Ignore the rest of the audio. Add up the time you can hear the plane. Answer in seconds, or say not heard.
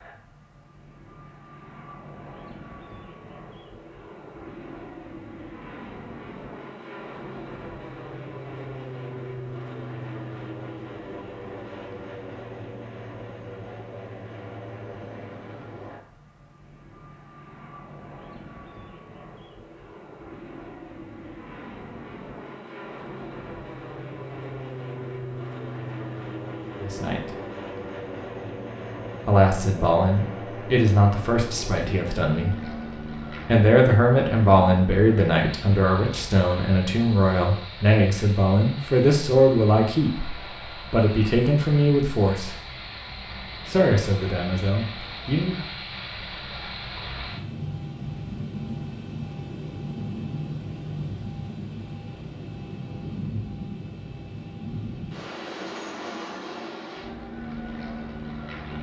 59 s.